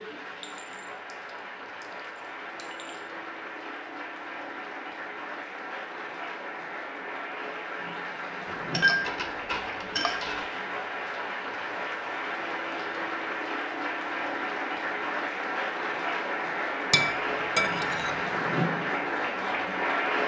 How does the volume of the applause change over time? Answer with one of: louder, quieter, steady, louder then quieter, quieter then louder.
louder.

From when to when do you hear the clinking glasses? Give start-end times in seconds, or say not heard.
0.4-3.0, 8.6-10.4, 16.9-18.1.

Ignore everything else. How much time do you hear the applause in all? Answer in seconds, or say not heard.
20 s.